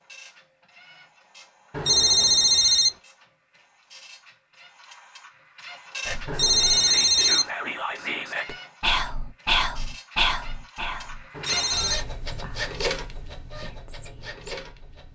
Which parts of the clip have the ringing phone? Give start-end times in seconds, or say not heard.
1.7-2.9, 6.2-7.5, 11.3-12.1.